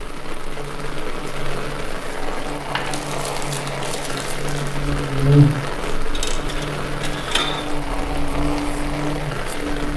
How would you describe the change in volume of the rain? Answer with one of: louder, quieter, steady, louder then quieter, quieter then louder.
steady.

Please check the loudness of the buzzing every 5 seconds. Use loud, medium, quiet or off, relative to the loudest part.
medium, loud.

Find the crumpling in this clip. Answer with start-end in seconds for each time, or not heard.
2.8-4.8.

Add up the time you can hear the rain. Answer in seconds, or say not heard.
10 s.